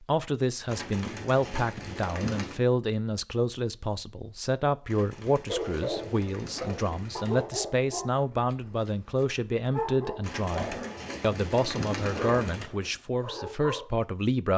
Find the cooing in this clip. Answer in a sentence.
You can hear the cooing from 0.7 to 2.6 s, from 4.8 to 7.5 s and from 10.2 to 12.7 s.